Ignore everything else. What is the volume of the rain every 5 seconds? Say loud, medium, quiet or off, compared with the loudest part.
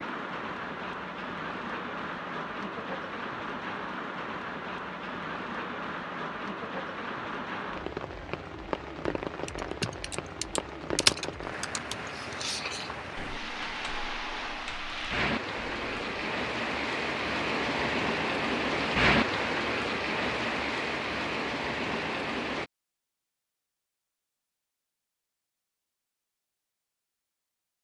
medium, medium, medium, loud, loud, off.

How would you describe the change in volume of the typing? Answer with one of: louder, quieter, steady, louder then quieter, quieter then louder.
louder then quieter.